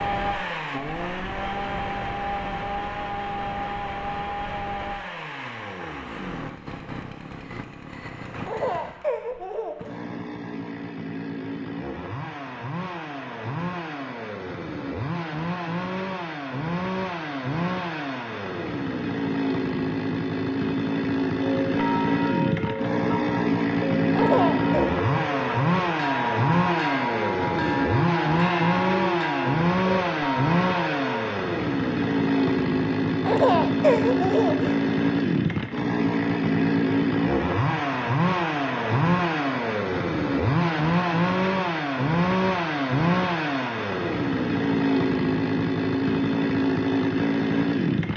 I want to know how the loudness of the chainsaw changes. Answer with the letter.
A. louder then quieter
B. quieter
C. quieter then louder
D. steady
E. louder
E.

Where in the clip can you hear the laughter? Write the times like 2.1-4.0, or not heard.
8.4-9.9, 24.1-24.9, 33.2-34.8.